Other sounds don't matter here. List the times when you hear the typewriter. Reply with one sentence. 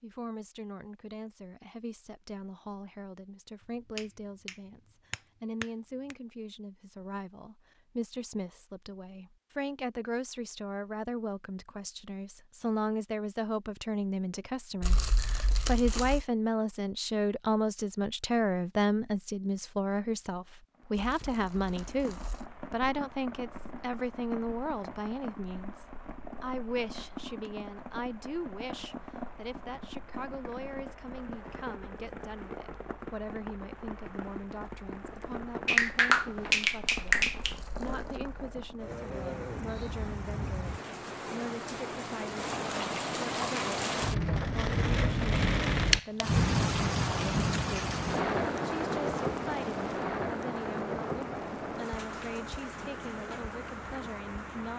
The typewriter can't be heard in this clip.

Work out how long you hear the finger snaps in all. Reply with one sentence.
You can hear the finger snaps for 4 seconds altogether.